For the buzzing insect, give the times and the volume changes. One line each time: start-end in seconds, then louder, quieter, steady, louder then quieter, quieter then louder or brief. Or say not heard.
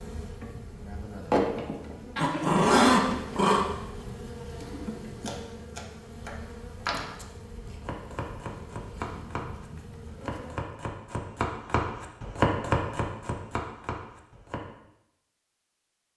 0.0-10.8 quieter.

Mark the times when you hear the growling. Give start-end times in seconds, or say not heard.
2.1-3.6.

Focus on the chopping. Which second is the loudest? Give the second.
13 s.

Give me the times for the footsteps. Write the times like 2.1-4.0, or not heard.
not heard.